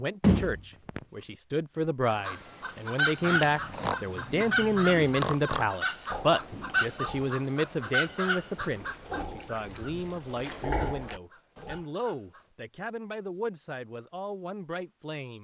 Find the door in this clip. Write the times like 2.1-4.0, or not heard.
0.2-1.0.